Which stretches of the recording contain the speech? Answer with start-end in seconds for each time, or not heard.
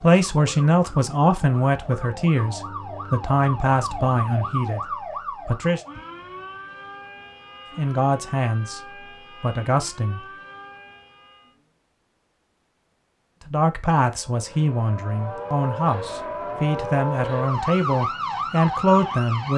0.0-5.8, 7.8-8.8, 9.4-10.2, 13.4-19.5.